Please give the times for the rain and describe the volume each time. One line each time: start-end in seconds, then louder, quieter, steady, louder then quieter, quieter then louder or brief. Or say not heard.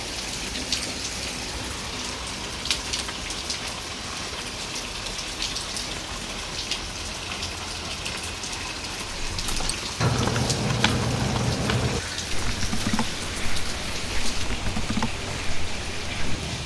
0.0-16.6 steady.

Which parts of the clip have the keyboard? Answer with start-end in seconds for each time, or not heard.
9.1-16.6.